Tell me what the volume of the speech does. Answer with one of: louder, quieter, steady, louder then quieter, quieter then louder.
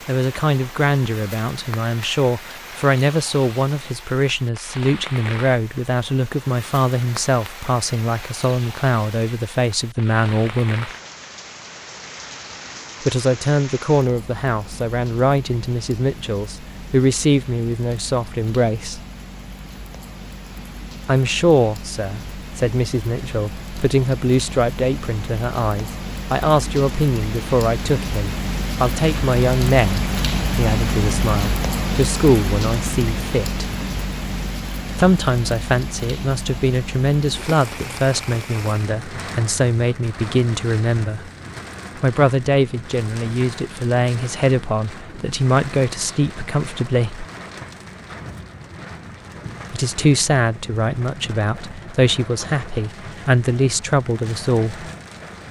steady.